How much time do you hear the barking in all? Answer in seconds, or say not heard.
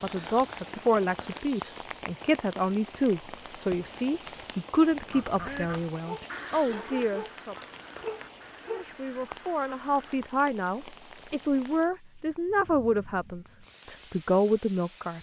3 s.